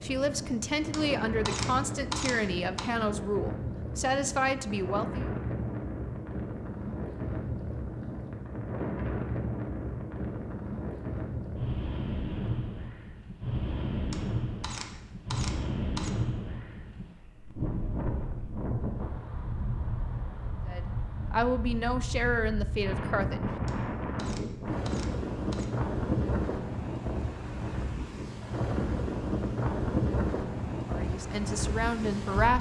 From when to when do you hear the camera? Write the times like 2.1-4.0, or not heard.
0.9-2.9, 14.1-16.1, 23.6-25.6.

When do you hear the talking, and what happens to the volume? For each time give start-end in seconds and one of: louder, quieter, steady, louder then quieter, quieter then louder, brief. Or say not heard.
0.0-5.2 steady
20.6-23.5 brief
30.9-32.5 brief.